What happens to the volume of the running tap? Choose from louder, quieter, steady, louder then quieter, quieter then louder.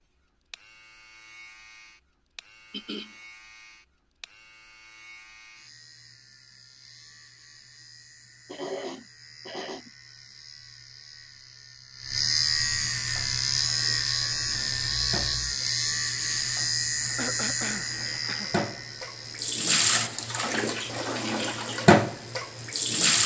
louder.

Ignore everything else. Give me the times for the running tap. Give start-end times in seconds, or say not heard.
13.0-23.2.